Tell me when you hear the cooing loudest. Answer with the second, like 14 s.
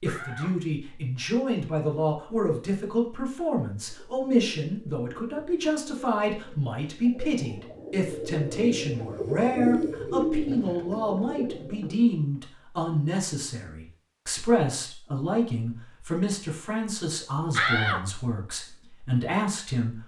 10 s.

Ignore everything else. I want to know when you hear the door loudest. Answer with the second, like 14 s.
18 s.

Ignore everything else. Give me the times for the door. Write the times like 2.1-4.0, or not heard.
0.1-0.8, 17.5-18.2.